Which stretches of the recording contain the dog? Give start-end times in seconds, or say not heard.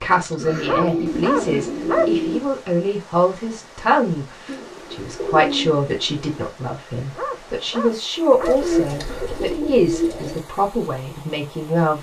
0.1-2.1, 6.5-8.6.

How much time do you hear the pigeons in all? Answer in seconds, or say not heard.
6 s.